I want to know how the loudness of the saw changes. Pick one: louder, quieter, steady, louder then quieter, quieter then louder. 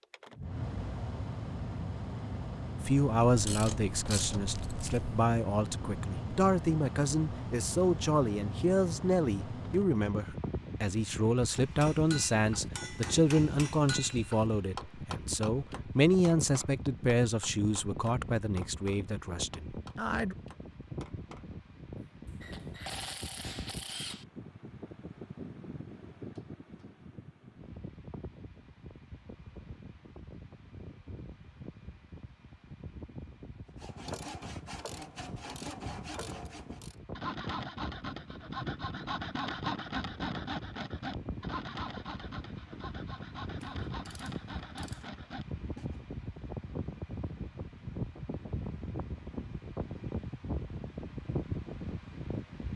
louder then quieter.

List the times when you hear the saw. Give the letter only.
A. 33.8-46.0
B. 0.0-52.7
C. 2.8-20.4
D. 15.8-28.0
A.